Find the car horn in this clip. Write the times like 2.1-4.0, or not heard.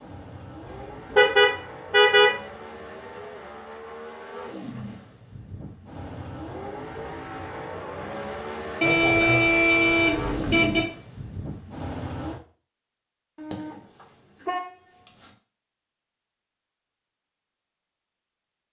1.1-2.3, 8.8-10.8, 13.3-15.3.